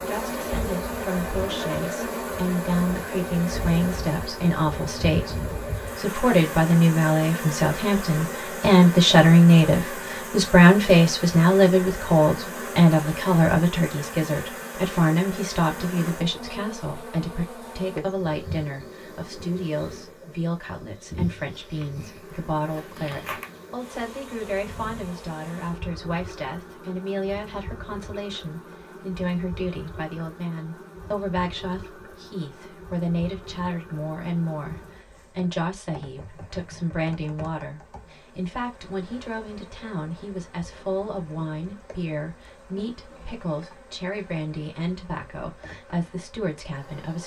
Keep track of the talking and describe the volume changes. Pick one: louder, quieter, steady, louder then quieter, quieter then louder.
quieter.